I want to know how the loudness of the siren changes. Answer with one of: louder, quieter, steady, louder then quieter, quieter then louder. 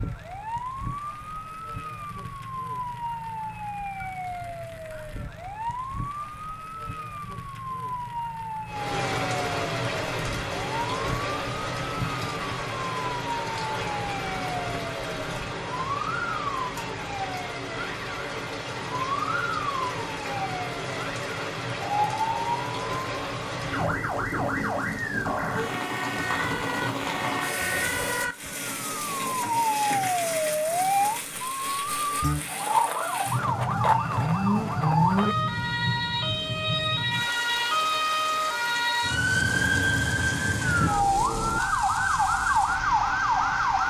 louder.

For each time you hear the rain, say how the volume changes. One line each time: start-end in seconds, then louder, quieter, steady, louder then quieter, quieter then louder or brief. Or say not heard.
8.7-43.8 quieter.